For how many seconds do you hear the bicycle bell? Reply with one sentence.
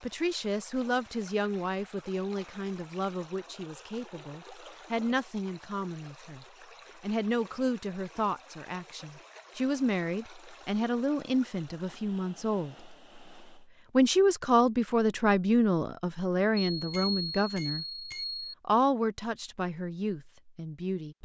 The bicycle bell can be heard for 2 seconds in total.